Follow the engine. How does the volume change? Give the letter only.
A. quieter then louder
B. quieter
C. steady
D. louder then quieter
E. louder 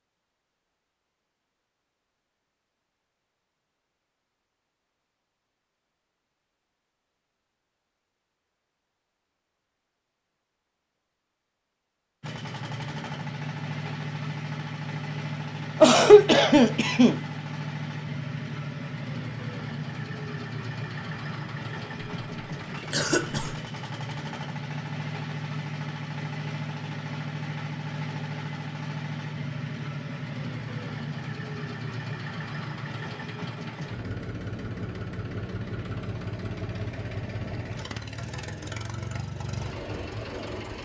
C.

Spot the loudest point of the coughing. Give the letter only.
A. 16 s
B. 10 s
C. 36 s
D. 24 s
A.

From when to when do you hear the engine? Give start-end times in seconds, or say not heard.
12.2-40.8.